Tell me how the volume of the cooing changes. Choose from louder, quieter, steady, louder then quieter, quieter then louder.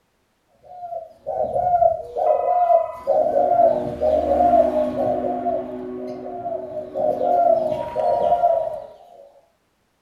quieter then louder.